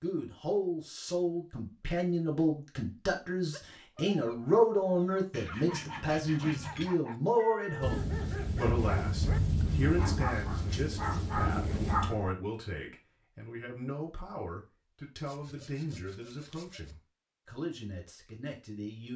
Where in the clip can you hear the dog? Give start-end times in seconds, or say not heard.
3.5-12.3.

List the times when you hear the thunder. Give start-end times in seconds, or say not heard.
7.8-12.2.